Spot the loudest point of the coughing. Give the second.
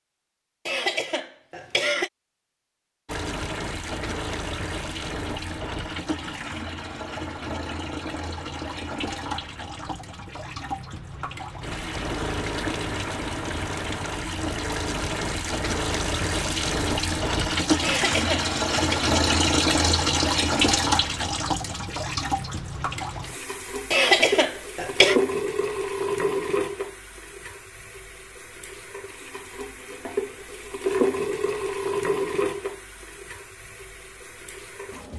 24 s.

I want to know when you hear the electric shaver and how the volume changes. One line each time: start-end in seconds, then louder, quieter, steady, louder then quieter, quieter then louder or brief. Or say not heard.
not heard.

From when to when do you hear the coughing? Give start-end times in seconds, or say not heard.
0.7-2.1, 17.8-19.1, 23.9-25.2.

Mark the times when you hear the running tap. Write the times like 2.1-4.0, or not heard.
3.0-35.1.